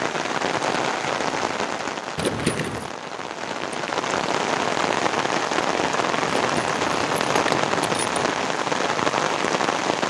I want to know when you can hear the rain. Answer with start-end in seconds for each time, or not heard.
0.0-10.0.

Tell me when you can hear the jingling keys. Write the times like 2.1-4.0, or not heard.
2.1-3.0, 6.3-8.3.